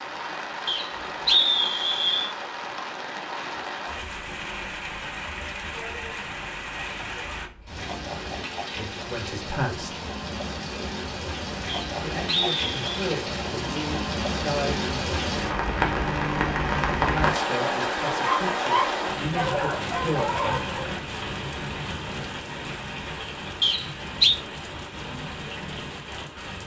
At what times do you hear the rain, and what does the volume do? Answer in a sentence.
The rain can be heard from 0.0 to 26.6 s, getting louder then quieter.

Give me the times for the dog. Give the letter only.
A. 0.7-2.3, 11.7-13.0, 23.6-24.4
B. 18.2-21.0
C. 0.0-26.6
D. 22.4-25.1
B.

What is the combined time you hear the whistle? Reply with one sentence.
The whistle can be heard for 4 seconds in total.